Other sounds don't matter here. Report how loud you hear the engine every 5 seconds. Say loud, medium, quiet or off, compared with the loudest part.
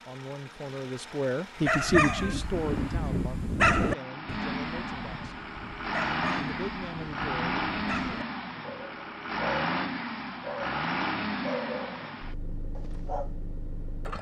medium, loud, loud.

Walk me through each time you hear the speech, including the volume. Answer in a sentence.
The speech can be heard from 0.1 to 5.3 s, getting louder then quieter; and briefly from 6.3 to 7.7 s.